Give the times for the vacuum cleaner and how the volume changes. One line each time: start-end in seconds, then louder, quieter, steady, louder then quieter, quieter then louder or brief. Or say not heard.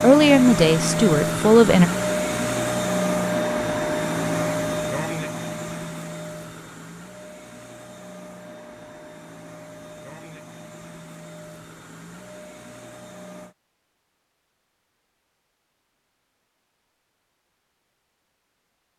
0.0-13.6 quieter.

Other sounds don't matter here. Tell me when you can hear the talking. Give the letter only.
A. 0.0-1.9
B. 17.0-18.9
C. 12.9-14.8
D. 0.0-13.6
A.